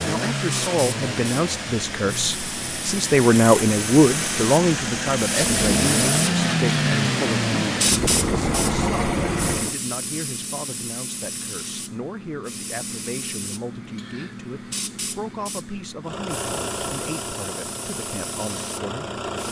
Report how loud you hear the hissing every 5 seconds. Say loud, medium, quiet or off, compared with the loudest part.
medium, loud, medium, medium.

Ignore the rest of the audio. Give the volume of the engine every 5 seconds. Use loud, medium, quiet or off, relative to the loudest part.
medium, loud, off, medium.